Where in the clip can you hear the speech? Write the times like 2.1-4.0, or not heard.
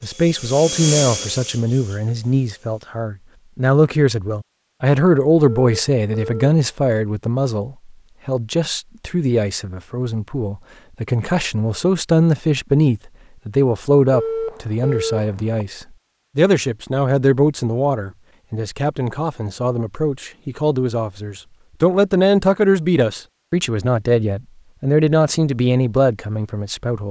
0.0-27.0.